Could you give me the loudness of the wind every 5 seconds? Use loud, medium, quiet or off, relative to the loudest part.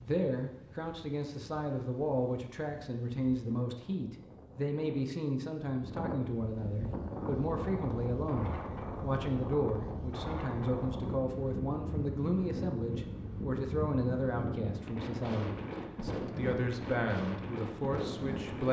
quiet, loud, loud, loud.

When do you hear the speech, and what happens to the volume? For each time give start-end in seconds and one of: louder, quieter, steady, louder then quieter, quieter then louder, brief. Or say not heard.
0.0-18.6 steady.